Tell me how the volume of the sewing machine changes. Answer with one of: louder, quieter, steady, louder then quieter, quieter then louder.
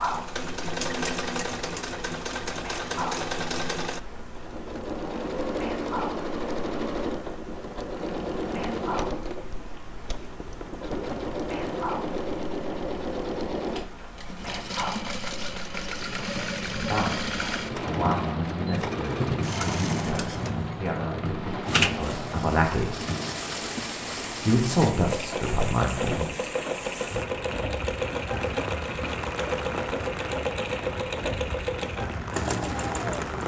steady.